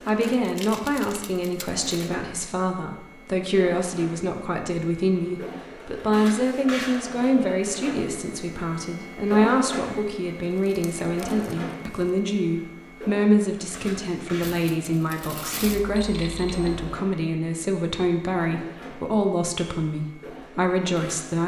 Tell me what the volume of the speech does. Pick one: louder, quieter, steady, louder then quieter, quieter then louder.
steady.